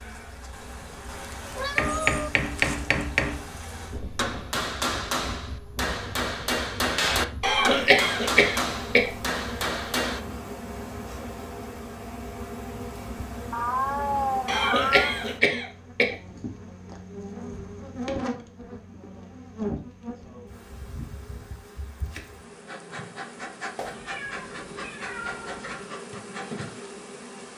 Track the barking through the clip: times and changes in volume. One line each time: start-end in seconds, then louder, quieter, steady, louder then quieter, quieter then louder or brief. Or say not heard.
not heard.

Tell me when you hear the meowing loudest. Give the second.
14 s.